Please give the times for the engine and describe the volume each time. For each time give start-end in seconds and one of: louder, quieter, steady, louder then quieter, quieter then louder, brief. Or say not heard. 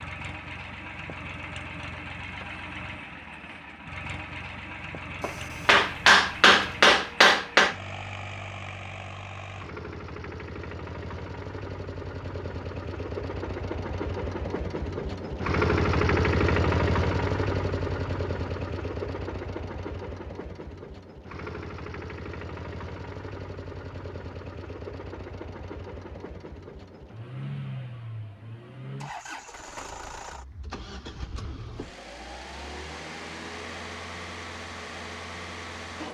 0.0-36.0 louder then quieter.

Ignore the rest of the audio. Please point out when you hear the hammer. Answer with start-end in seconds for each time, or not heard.
5.2-7.8.